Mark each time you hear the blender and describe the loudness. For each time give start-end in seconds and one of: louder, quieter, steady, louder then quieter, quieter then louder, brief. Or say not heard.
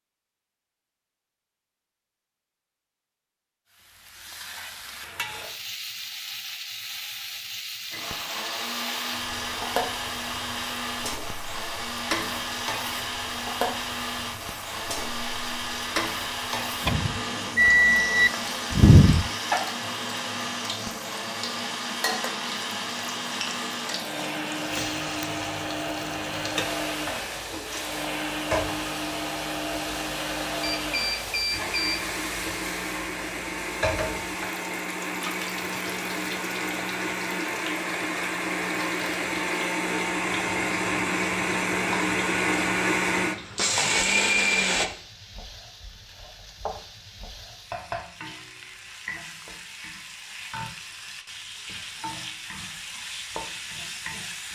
7.9-44.9 louder.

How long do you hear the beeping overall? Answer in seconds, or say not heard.
4 s.